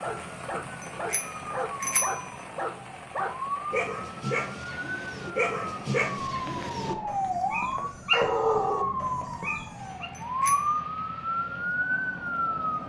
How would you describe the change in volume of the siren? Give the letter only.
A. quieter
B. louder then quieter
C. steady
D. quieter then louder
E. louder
E.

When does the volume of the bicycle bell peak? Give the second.
2 s.